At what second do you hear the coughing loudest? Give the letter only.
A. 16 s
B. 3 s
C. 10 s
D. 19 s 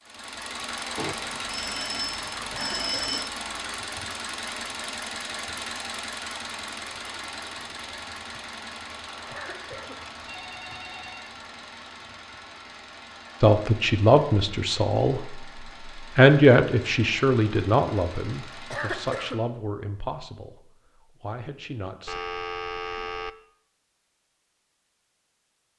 D.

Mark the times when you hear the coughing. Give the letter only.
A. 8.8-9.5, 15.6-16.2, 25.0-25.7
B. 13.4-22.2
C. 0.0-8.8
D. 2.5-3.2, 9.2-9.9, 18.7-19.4
D.